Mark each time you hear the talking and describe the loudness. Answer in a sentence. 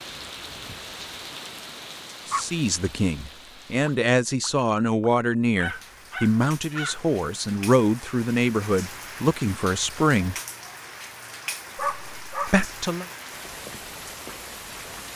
You can hear the talking from 2.2 to 10.3 s, at a steady volume; and briefly from 12.4 to 13.1 s.